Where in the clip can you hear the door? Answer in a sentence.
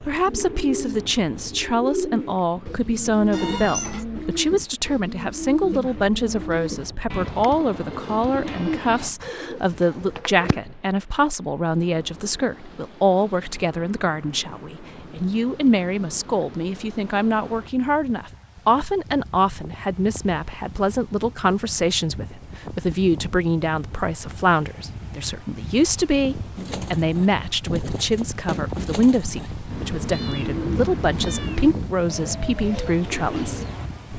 The door can't be heard in this clip.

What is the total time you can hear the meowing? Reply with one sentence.
The meowing can be heard for 3 seconds in total.